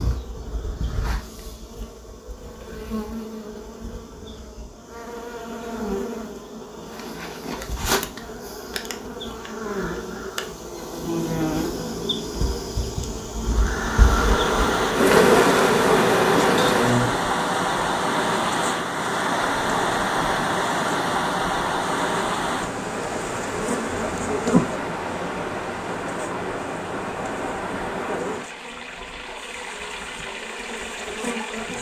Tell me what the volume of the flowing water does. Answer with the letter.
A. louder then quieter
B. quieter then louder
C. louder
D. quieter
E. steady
D.